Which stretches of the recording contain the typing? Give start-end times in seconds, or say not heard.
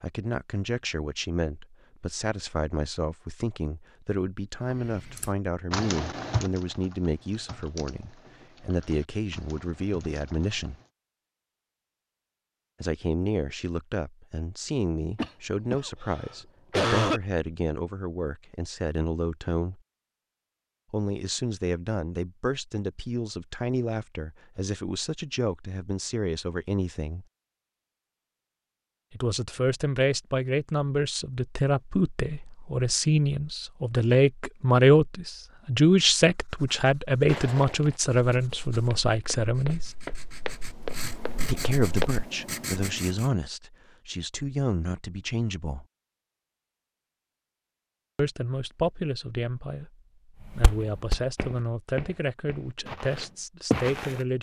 4.7-10.9.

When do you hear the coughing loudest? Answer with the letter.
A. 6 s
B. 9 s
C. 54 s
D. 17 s
D.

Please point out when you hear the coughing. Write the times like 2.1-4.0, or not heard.
15.2-17.2.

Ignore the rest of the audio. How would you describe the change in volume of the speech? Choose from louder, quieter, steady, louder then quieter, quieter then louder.
louder then quieter.